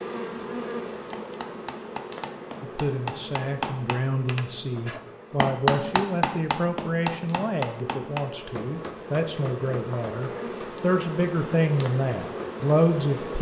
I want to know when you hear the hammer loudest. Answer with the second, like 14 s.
6 s.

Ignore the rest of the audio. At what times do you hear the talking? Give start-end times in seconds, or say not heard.
2.6-13.3.